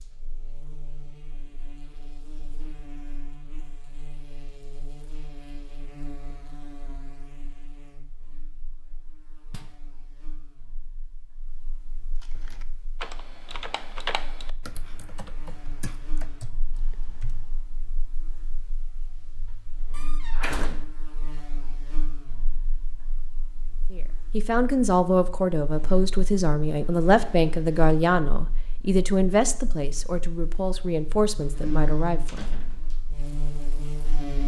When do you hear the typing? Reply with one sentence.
The typing can be heard from 12.2 to 17.7 s.